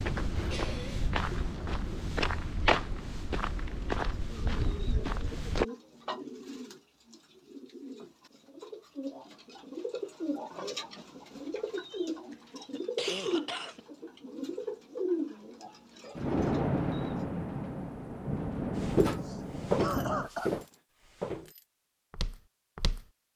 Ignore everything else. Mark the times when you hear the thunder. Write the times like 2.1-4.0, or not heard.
16.1-20.3.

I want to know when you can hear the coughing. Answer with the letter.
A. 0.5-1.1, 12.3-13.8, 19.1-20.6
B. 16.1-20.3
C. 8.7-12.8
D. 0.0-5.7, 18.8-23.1
A.